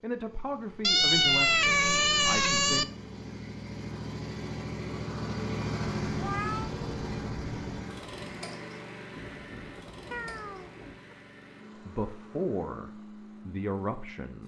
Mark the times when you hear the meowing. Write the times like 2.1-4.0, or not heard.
0.8-2.9, 6.0-7.8, 10.1-11.2.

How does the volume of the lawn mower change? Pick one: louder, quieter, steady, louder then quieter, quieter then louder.
louder then quieter.